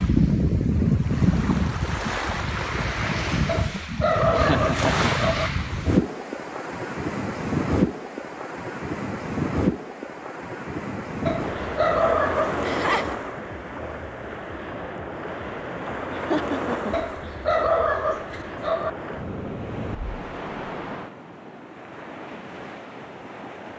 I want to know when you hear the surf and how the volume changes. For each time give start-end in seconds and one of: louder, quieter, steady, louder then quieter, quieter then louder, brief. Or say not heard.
0.0-23.7 quieter.